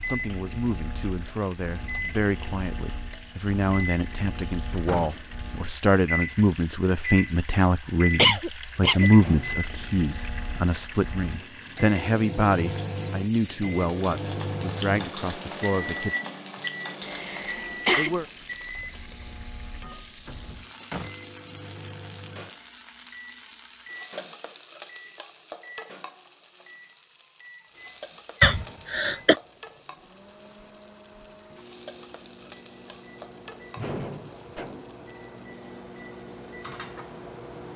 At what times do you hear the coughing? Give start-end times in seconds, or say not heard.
8.2-9.1, 17.1-18.1, 28.4-29.4.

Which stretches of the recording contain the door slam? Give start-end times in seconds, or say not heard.
4.8-5.2, 20.2-21.1, 33.8-35.0.